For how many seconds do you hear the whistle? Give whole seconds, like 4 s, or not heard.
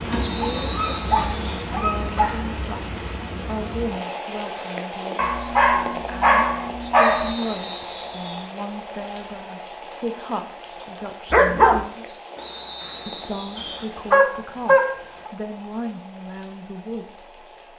4 s.